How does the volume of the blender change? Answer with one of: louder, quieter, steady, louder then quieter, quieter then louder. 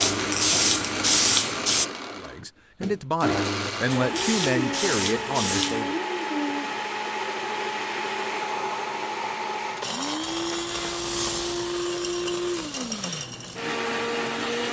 steady.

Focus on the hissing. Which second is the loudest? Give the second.
1 s.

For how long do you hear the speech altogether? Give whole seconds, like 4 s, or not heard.
4 s.